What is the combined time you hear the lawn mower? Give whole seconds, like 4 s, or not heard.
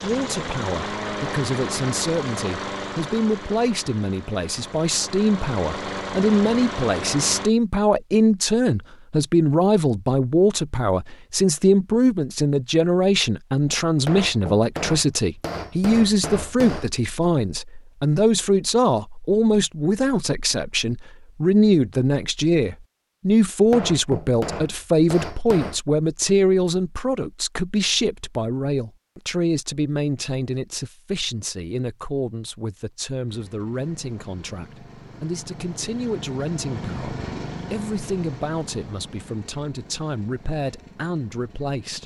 16 s.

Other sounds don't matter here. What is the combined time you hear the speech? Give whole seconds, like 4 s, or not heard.
42 s.